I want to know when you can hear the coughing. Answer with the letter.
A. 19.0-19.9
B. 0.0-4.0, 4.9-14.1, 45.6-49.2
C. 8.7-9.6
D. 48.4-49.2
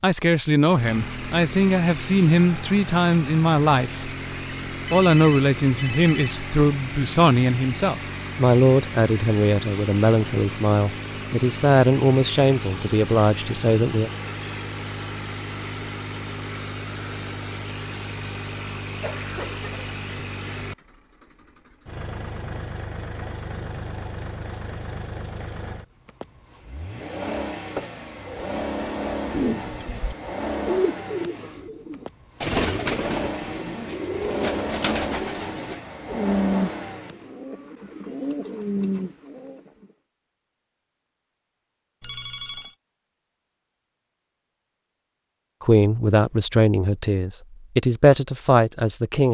A.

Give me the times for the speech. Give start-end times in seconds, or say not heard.
0.0-4.0, 4.9-14.1, 45.6-49.2.